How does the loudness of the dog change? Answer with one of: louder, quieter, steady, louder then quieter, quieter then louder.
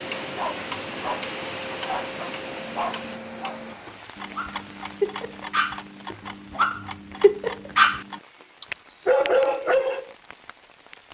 louder.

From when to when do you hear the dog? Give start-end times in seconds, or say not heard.
0.3-10.1.